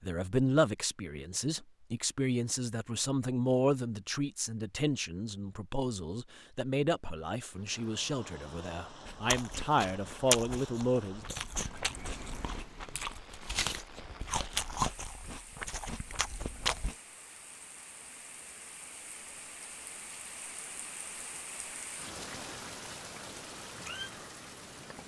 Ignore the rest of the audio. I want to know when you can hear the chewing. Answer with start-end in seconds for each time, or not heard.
9.1-16.9.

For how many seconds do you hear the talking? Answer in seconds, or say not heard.
11 s.